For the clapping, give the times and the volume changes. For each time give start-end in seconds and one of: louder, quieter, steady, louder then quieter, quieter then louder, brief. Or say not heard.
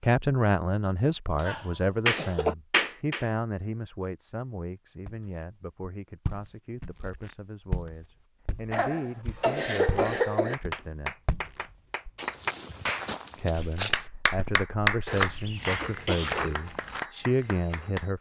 1.4-3.3 brief
10.5-18.1 louder then quieter.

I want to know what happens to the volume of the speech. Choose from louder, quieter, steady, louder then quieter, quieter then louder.
quieter then louder.